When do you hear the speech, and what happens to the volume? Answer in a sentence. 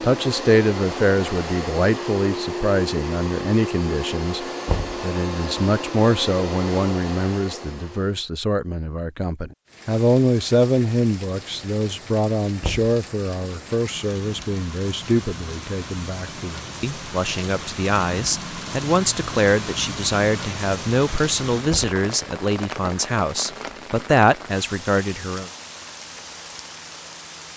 The speech can be heard from 0.0 to 25.5 s, at a steady volume.